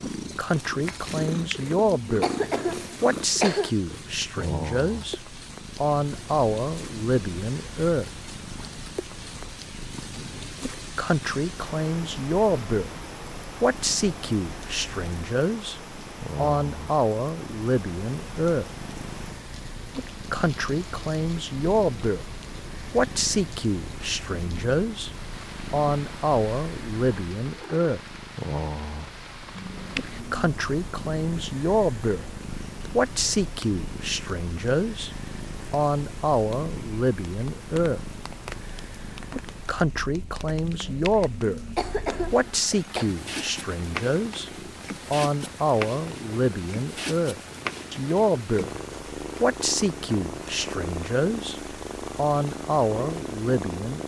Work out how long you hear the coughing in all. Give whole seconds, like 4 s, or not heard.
6 s.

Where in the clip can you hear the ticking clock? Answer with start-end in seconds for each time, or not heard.
not heard.